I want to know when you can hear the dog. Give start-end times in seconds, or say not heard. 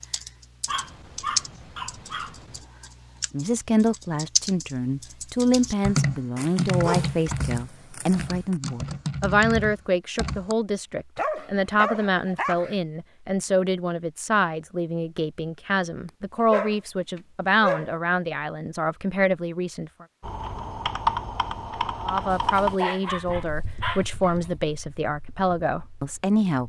0.7-2.6, 6.3-8.6, 11.2-12.8, 16.1-17.9, 22.3-24.5.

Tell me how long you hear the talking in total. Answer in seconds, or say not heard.
21 s.